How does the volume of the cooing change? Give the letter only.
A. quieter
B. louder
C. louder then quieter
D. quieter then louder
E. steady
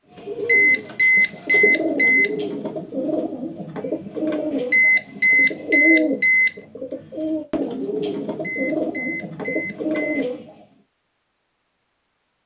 E.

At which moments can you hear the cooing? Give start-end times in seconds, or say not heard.
0.1-10.7.